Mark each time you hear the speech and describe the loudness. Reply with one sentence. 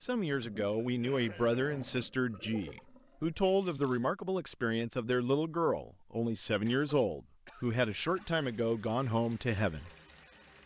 The speech can be heard from 0.0 to 9.9 s, at a steady volume.